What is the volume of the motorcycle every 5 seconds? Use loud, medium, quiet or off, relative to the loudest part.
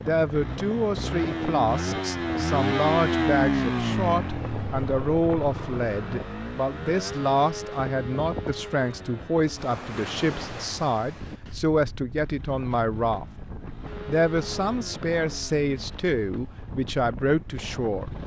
loud, medium, quiet, quiet.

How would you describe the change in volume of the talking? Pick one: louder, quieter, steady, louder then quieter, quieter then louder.
steady.